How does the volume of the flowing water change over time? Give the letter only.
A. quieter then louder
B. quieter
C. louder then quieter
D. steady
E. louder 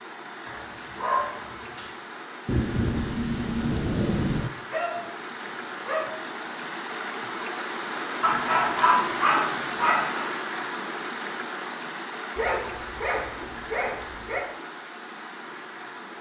C.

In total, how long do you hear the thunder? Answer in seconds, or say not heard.
2 s.